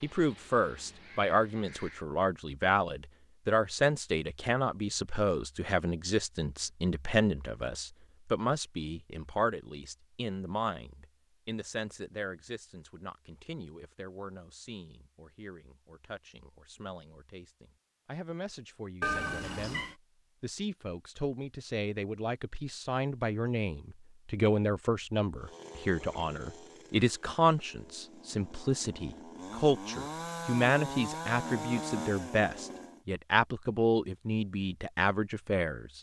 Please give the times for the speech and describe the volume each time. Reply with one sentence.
The speech can be heard from 0.0 to 35.9 s, getting quieter then louder.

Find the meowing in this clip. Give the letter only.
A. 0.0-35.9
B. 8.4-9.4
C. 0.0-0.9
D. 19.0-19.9
D.